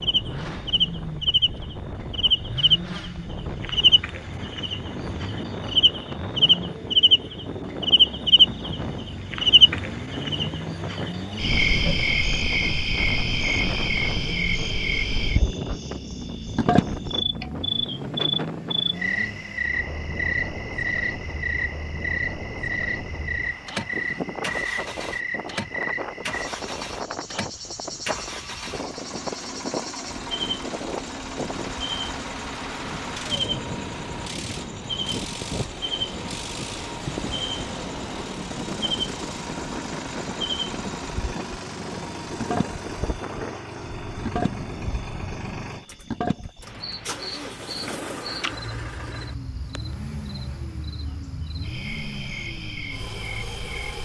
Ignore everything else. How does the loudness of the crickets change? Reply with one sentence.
The volume of the crickets goes down.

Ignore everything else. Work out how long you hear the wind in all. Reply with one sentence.
The wind can be heard for 46 seconds in total.